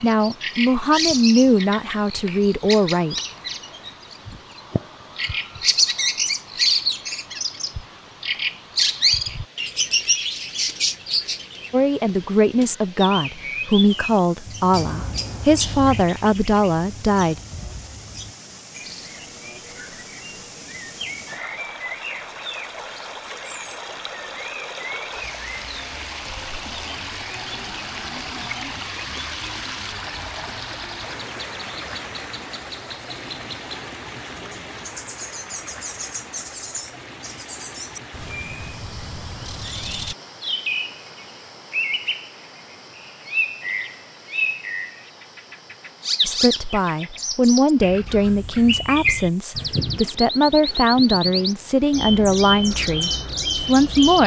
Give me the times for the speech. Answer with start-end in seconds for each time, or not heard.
0.0-3.1, 11.7-17.4, 46.2-54.2.